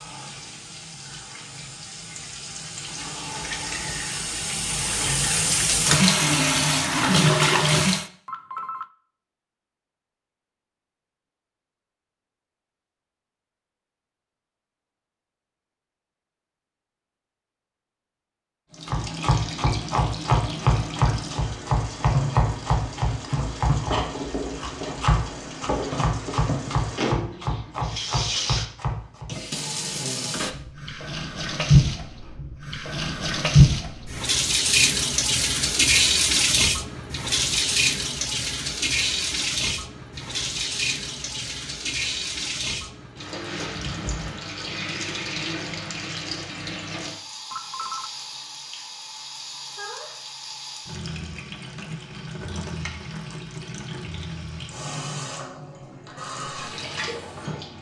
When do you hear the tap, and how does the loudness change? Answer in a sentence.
You can hear the tap from 0.0 to 8.1 s, getting louder; and from 18.7 to 57.7 s, getting louder then quieter.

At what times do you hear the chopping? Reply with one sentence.
You can hear the chopping from 18.9 to 29.3 s.